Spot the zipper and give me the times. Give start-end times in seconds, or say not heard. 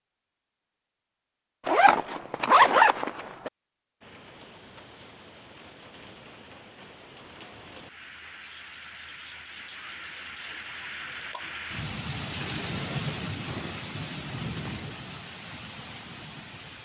1.6-3.5, 13.4-14.9.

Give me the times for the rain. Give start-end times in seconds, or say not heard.
4.0-16.7.